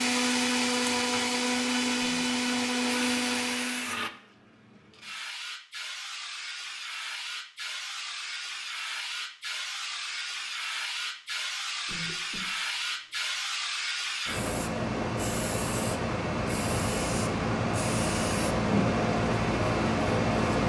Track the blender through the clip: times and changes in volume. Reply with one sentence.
The blender can be heard from 0.0 to 4.1 s, at a steady volume.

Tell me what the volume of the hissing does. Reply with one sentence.
The volume of the hissing goes up.